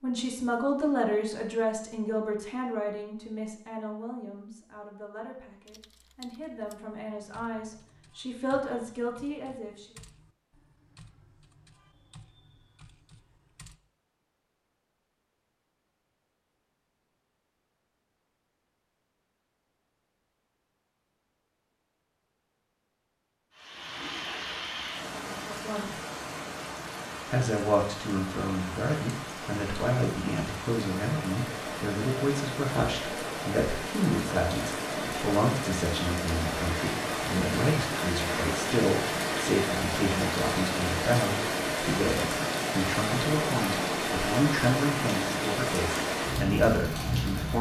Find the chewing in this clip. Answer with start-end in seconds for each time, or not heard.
not heard.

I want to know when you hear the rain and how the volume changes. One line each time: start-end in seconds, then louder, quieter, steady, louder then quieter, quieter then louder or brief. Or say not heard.
23.5-47.5 louder.